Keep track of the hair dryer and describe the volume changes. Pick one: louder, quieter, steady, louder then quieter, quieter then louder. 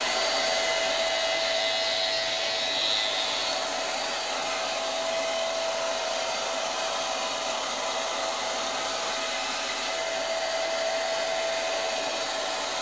steady.